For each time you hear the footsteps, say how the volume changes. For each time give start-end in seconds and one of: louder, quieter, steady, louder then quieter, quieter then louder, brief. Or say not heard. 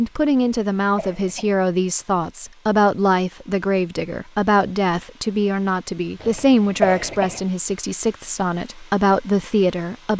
not heard.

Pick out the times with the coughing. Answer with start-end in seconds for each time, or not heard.
0.3-1.6, 6.2-7.5.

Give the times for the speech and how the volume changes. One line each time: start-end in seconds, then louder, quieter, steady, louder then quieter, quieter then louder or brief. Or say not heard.
0.0-10.1 steady.